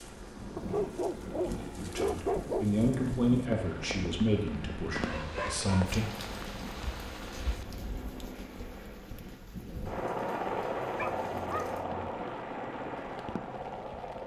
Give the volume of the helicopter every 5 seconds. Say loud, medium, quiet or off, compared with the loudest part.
medium, medium, loud.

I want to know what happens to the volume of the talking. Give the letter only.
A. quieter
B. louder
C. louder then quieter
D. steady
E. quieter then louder
A.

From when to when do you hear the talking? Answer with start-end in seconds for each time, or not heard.
1.8-6.0.